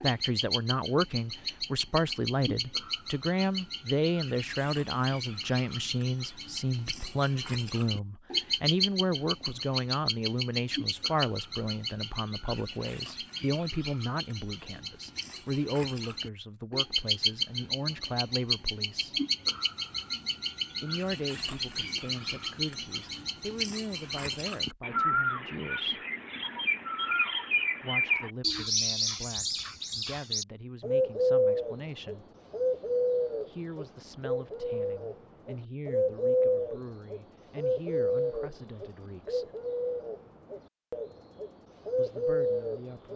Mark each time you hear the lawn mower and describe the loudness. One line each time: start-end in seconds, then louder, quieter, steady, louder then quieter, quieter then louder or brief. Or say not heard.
not heard.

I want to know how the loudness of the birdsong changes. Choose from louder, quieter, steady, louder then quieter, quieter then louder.
louder.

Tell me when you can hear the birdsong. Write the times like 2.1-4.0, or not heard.
0.0-43.1.